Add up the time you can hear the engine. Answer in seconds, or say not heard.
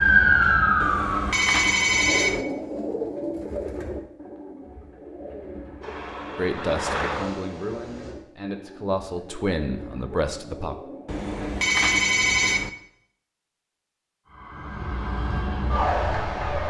2 s.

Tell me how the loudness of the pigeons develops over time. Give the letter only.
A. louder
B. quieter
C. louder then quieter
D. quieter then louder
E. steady
B.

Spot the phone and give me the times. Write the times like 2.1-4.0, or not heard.
0.8-2.5, 11.1-12.7.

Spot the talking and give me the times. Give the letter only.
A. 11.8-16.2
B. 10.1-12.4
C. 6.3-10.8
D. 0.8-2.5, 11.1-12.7
C.